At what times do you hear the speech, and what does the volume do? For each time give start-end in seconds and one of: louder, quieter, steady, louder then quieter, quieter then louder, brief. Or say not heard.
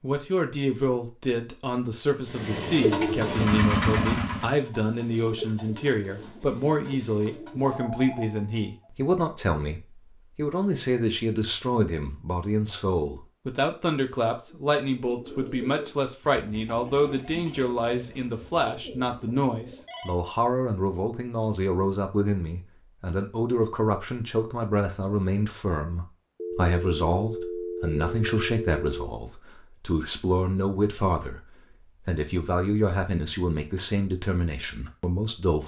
0.0-35.6 steady.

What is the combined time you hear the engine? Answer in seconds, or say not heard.
2 s.